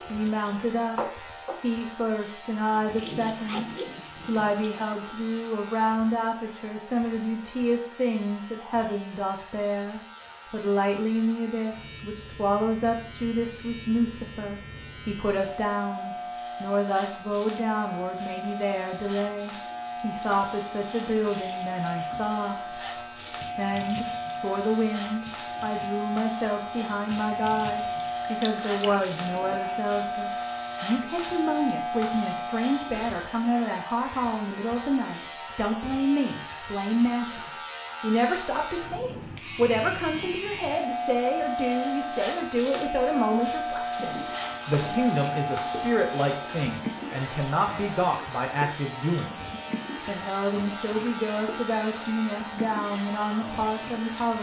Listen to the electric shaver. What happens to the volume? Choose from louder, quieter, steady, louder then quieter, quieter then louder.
louder.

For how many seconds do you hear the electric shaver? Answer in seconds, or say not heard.
54 s.